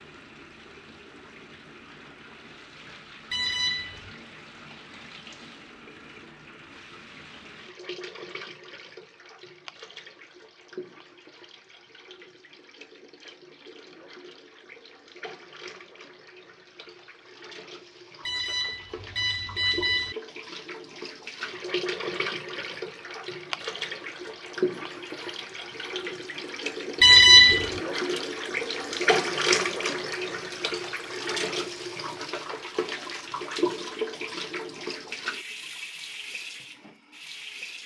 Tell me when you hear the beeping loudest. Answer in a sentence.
The volume of the beeping peaks at 27 seconds.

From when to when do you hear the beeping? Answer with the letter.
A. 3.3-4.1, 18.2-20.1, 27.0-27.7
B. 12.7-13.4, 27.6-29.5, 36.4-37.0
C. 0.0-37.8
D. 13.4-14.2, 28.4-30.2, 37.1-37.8
A.